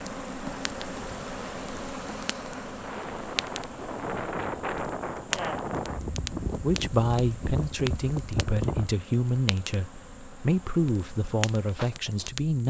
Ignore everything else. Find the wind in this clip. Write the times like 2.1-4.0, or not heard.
0.0-8.9.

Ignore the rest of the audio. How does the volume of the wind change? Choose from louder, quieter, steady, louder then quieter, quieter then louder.
louder.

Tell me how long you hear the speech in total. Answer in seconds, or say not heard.
6 s.